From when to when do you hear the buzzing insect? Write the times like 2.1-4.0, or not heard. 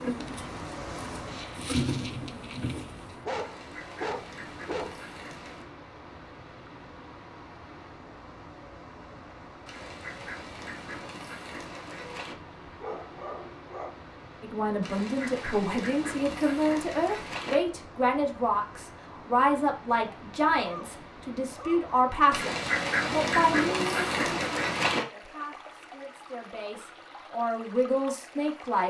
0.0-3.2.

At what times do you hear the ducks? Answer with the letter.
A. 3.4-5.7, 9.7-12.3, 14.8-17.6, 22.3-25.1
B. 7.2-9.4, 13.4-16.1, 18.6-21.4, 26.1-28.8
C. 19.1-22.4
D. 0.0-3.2
A.